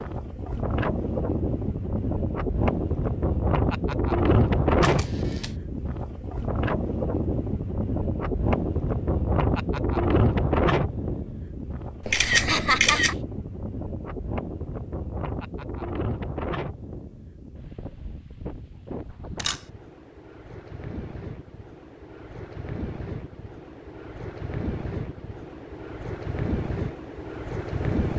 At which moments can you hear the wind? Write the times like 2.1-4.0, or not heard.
0.0-28.1.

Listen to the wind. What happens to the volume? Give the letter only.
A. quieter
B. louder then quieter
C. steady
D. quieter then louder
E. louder
D.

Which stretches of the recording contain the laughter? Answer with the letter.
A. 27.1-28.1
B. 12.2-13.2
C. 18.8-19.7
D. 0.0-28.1
B.